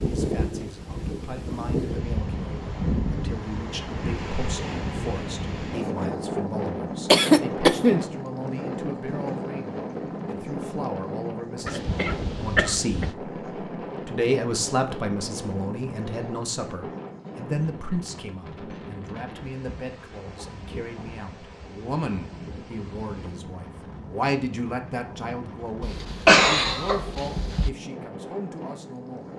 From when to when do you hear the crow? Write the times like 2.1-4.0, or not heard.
not heard.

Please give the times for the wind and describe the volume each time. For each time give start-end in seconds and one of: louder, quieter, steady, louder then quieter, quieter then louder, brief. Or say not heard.
0.0-29.3 quieter.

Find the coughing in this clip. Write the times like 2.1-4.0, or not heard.
7.1-8.1, 11.7-13.1, 25.8-27.7.